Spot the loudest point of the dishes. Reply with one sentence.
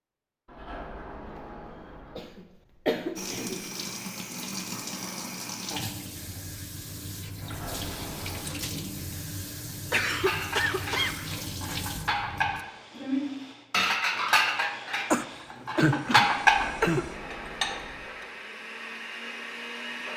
The volume of the dishes peaks at 16 seconds.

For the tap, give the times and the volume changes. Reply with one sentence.
The tap can be heard from 3.1 to 12.7 s, at a steady volume.